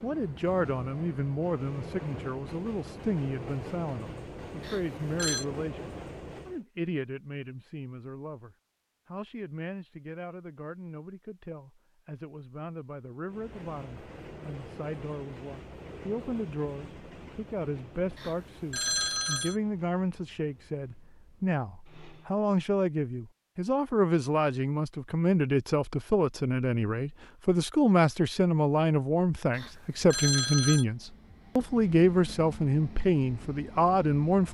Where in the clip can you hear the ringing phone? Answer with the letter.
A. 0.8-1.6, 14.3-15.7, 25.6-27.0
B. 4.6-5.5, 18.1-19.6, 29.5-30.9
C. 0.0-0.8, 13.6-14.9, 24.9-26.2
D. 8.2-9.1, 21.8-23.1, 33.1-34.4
B.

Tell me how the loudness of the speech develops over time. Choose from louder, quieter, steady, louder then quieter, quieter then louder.
quieter then louder.